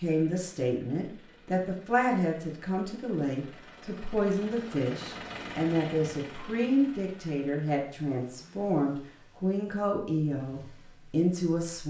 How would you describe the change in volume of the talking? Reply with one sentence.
The volume of the talking stays about the same.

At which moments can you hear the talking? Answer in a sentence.
The talking can be heard from 0.0 to 11.8 s.